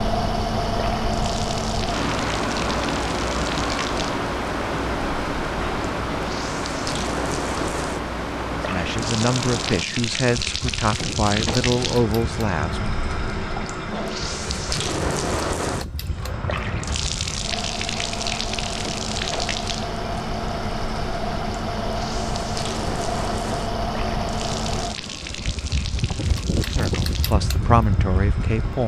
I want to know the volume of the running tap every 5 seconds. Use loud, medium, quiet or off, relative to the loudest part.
medium, loud, loud, loud, medium, medium.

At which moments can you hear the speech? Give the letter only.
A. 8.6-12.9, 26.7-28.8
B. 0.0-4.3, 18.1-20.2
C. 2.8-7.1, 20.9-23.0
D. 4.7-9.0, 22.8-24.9
A.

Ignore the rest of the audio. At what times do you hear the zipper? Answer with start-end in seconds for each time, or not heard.
not heard.